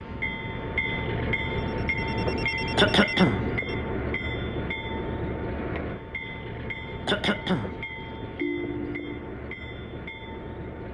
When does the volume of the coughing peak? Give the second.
3 s.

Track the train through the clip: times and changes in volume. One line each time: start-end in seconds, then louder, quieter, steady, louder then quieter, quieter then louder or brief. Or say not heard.
0.0-10.9 quieter.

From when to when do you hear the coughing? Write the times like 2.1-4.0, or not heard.
2.8-3.5, 7.0-7.7.